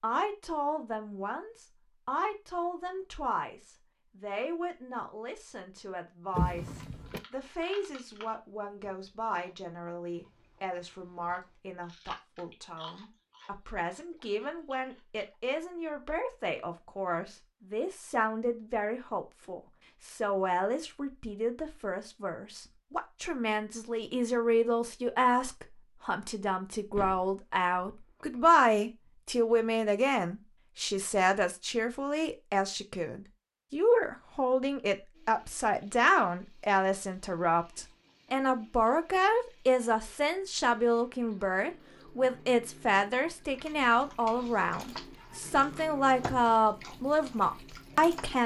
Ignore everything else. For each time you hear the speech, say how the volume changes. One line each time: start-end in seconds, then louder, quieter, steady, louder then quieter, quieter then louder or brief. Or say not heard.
0.0-48.4 louder.